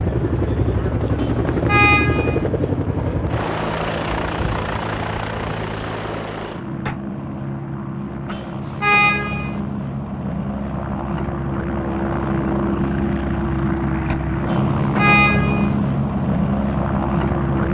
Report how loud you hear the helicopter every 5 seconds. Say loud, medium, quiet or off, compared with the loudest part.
loud, medium, loud, loud.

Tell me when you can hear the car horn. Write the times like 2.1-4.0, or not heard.
1.2-2.5, 8.3-9.6, 14.5-15.8.